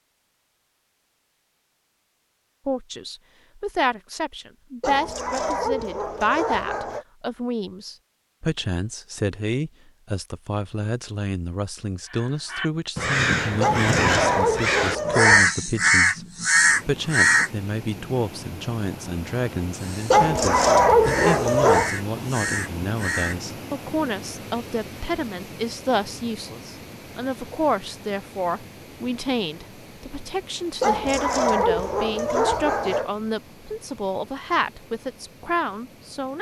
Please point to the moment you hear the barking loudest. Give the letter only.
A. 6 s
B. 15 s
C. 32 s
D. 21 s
D.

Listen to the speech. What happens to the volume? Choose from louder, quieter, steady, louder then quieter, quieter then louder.
steady.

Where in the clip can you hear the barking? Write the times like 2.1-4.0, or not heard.
4.8-7.0, 13.6-15.5, 20.1-21.9, 30.8-33.1.